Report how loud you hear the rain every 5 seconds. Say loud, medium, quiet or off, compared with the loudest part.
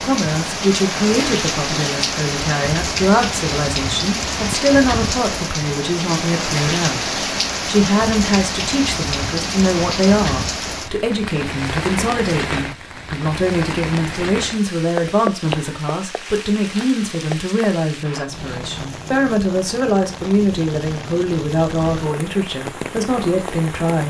loud, loud, loud, medium, medium.